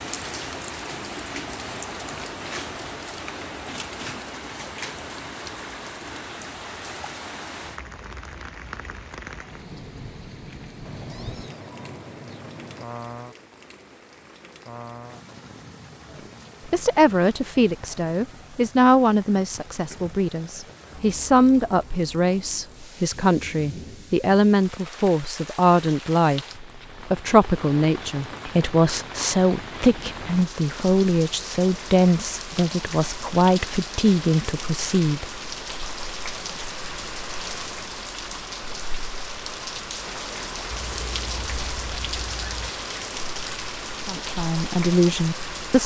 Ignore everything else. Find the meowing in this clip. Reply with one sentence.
You can hear the meowing from 10.8 to 12.8 s and from 40.7 to 42.7 s.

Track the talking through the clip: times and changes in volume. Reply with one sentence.
The talking can be heard from 16.6 to 35.2 s, at a steady volume; and briefly from 44.0 to 45.8 s.